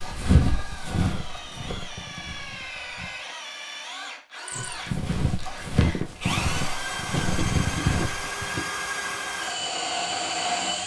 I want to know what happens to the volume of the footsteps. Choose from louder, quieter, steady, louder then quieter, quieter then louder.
quieter then louder.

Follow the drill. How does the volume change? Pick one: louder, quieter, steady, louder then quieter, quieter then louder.
louder.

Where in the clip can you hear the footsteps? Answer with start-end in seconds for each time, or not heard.
0.0-3.2, 4.5-8.5.